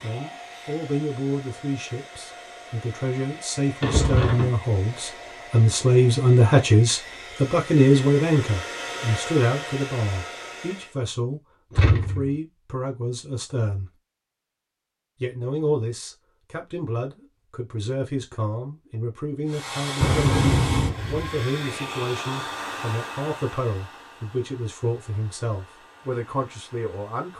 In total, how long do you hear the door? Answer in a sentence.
The door can be heard for 2 seconds in total.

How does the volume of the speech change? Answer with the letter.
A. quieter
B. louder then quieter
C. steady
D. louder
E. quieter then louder
B.